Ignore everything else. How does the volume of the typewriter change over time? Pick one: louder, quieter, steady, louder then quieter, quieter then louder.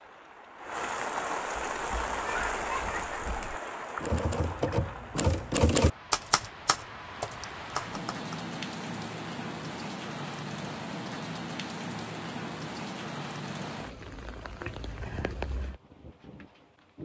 louder then quieter.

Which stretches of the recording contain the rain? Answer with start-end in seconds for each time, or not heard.
0.0-17.0.